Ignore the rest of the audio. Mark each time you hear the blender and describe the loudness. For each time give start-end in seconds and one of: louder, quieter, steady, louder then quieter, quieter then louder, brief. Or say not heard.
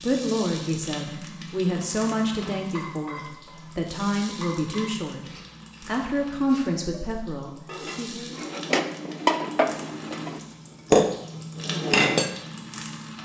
not heard.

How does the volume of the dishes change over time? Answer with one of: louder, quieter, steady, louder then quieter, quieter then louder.
quieter then louder.